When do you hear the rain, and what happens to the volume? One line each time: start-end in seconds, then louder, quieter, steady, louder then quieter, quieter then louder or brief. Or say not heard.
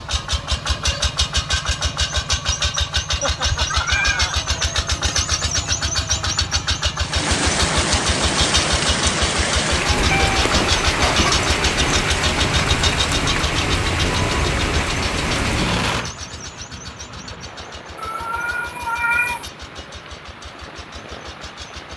7.0-21.9 quieter.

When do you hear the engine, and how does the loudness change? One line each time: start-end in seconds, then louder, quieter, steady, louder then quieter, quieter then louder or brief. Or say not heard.
0.0-21.9 quieter.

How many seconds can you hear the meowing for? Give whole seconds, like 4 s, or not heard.
4 s.